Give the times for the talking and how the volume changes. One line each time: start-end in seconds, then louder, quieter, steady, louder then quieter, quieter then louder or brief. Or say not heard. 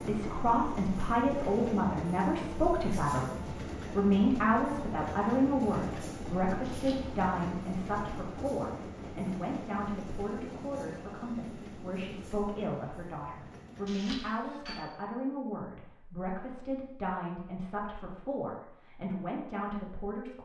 0.0-20.3 quieter.